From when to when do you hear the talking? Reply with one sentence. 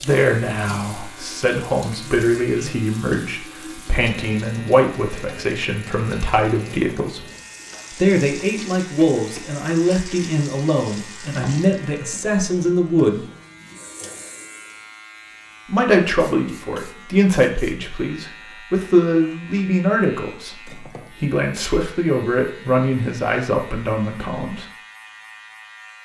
You can hear the talking from 0.0 to 7.2 s, from 8.0 to 13.2 s and from 15.7 to 24.6 s.